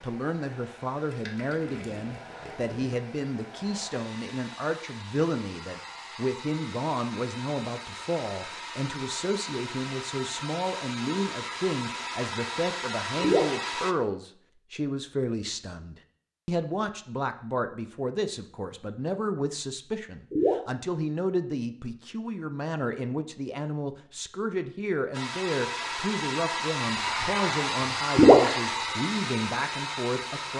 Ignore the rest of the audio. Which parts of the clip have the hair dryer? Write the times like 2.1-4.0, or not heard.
0.0-13.9, 25.1-30.5.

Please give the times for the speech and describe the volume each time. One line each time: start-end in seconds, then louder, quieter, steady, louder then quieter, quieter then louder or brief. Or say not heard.
0.0-30.5 steady.